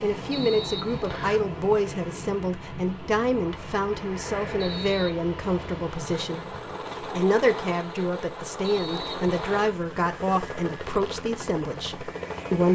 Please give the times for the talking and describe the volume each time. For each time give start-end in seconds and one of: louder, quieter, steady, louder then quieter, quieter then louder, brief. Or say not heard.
0.0-12.7 steady.